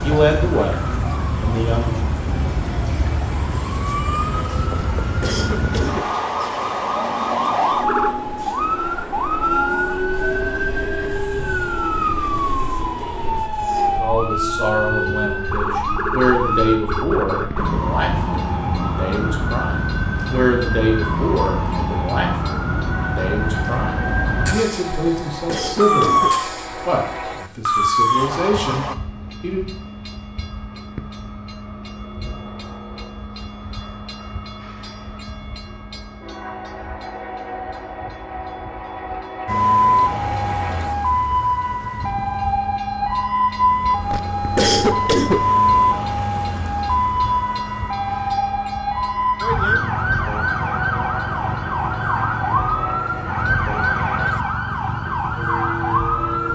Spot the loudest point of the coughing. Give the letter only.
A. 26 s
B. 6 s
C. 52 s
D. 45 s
D.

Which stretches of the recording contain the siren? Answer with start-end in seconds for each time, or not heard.
0.0-28.9, 39.5-56.5.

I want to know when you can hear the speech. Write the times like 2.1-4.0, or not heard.
0.0-2.0, 13.9-29.7.